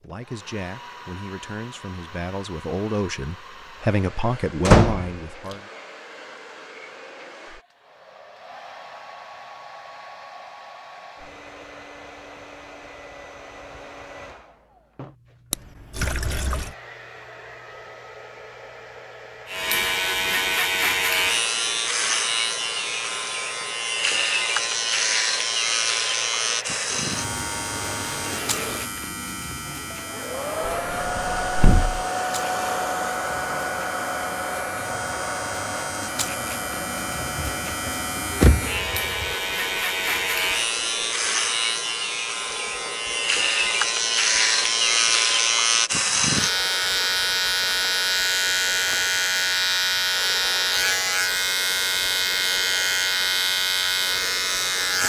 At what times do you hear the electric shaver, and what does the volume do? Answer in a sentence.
You can hear the electric shaver from 19.4 to 55.0 s, getting quieter then louder.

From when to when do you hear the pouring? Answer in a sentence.
The pouring can be heard from 15.5 to 16.8 s.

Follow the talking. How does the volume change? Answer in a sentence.
The volume of the talking goes up.